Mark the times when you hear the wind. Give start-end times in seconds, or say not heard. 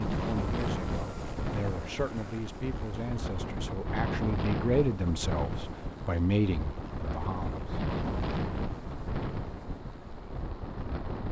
0.0-11.2.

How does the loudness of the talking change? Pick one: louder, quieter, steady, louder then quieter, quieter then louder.
louder.